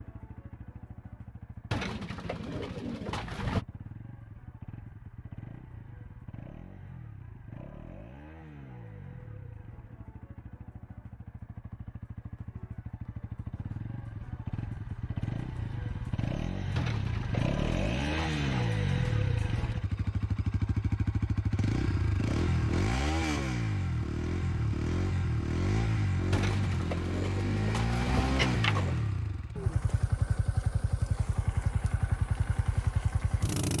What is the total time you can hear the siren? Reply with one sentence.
You can't hear the siren here.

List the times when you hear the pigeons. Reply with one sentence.
The pigeons can be heard from 1.7 to 3.6 s, from 16.8 to 18.7 s and from 26.3 to 29.0 s.